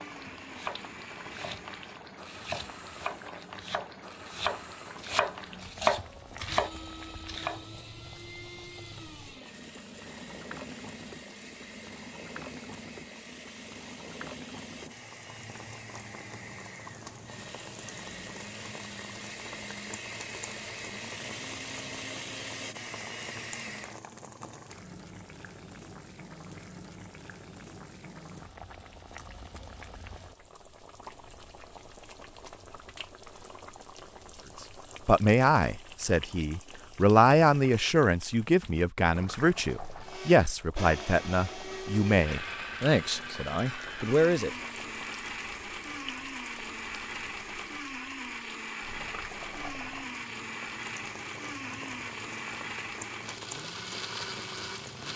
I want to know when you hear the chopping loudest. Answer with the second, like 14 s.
6 s.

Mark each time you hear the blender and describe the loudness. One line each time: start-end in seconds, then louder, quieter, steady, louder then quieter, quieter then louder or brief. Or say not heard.
0.0-24.0 louder
40.0-55.1 steady.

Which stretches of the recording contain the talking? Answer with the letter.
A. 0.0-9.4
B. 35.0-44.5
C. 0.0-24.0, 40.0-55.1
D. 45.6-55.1
B.